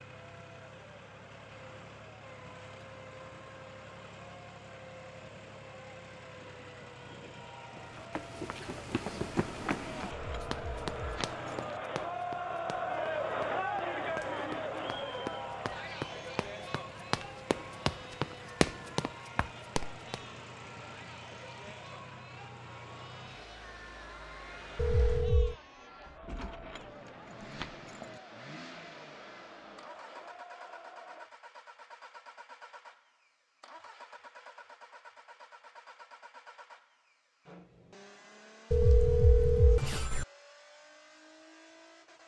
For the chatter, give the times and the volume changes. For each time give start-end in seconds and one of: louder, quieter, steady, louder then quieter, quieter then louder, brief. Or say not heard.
0.0-31.3 louder then quieter.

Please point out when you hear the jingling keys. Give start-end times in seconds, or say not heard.
9.8-11.8, 26.2-28.2.